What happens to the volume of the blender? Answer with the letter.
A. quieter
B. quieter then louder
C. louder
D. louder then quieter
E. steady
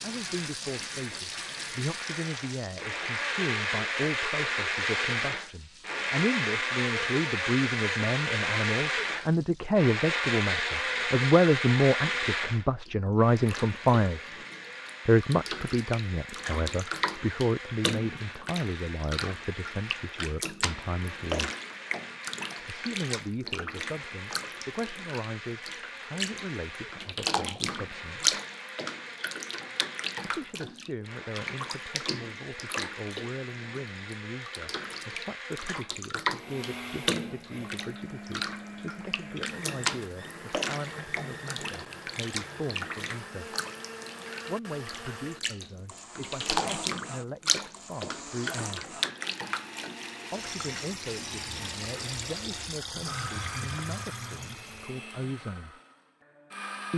A.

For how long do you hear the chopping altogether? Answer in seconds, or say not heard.
not heard.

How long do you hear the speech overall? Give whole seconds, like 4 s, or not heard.
50 s.